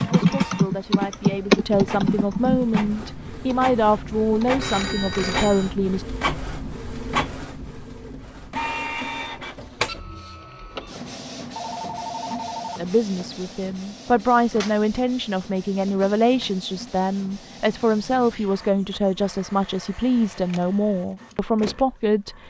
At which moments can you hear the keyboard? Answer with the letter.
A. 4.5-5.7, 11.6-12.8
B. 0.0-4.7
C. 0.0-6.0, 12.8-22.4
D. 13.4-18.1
B.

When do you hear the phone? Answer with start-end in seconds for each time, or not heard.
4.5-5.7, 11.6-12.8.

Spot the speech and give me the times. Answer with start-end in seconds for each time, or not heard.
0.0-6.0, 12.8-22.4.